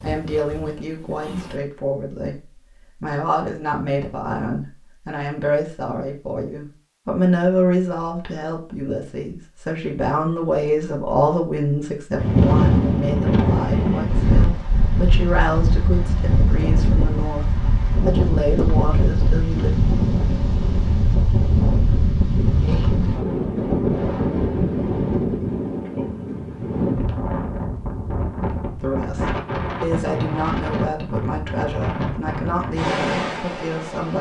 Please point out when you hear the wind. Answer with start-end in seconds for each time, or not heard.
12.2-34.1.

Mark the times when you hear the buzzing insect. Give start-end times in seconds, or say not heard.
0.0-1.6.